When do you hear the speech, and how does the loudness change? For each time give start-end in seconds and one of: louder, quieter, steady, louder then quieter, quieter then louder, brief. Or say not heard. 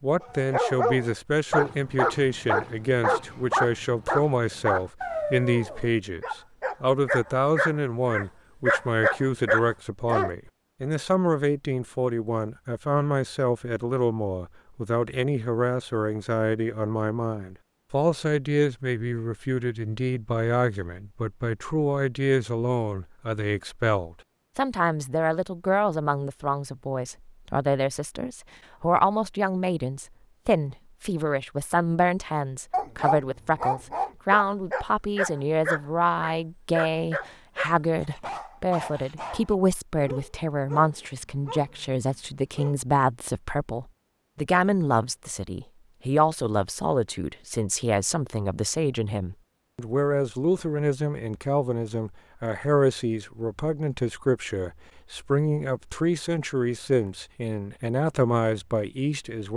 0.0-59.5 steady.